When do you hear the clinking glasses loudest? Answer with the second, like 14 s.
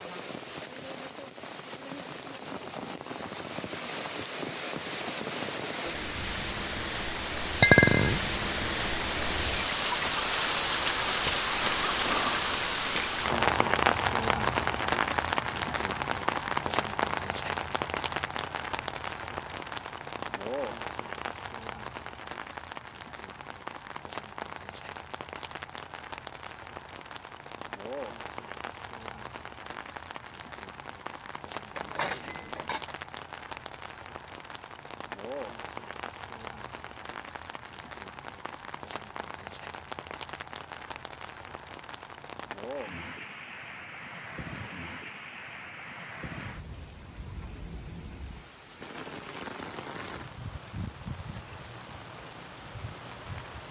8 s.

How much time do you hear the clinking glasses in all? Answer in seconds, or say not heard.
2 s.